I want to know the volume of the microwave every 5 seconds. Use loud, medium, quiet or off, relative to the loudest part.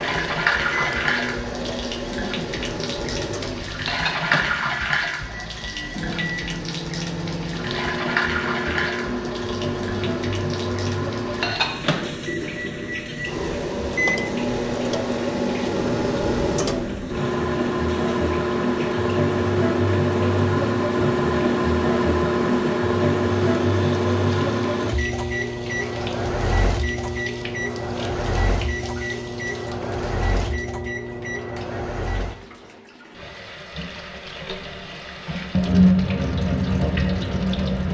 medium, medium, medium, loud, loud, medium, medium, off.